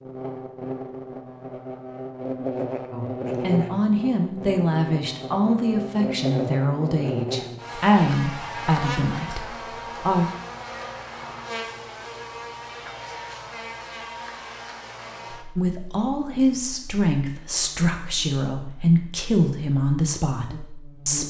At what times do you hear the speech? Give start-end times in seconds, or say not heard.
2.9-10.2, 15.6-21.2.